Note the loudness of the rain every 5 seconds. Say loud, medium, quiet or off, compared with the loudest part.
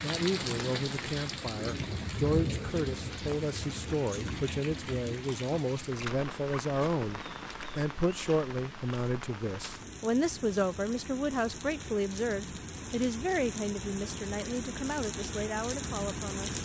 loud, medium, medium, loud.